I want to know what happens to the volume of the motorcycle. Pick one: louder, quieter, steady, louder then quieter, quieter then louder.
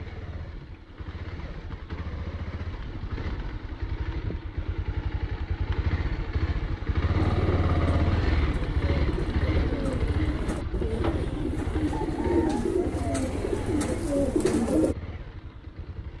louder then quieter.